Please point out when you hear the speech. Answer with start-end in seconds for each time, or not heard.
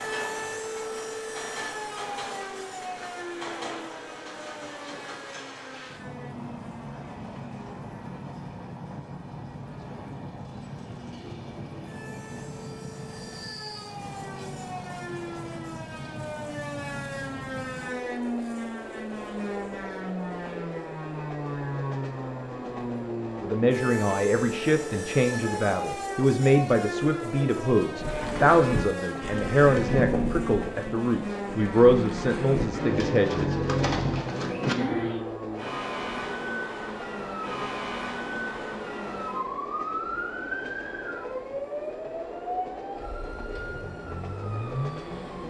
23.4-33.6.